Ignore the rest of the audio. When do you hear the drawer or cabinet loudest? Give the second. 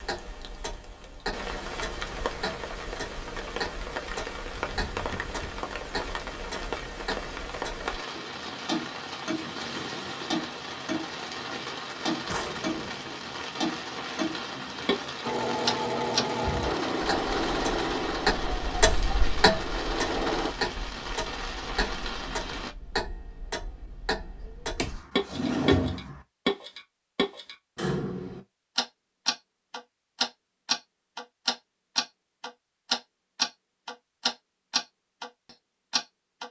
26 s.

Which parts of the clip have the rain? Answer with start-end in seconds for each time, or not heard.
0.0-22.8.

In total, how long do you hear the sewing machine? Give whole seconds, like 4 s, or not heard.
5 s.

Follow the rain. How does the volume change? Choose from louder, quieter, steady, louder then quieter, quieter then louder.
steady.